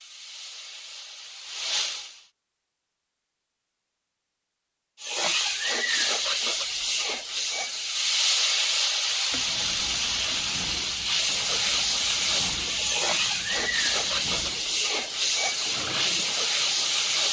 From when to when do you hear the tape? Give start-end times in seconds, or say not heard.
not heard.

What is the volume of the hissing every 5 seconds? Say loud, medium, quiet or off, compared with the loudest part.
medium, loud, loud, loud.